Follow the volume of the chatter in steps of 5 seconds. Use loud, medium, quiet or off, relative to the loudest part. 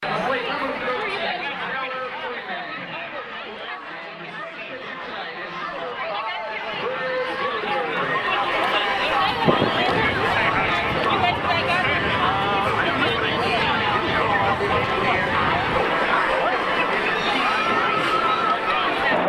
medium, loud, loud, loud.